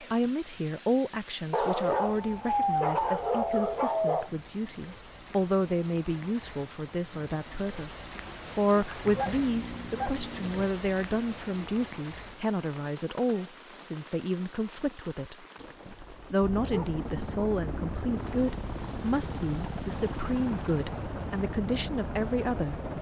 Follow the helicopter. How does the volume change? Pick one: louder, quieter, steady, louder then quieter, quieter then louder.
steady.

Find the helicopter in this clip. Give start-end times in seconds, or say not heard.
16.4-22.9.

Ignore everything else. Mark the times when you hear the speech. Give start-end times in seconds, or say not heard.
0.1-22.8.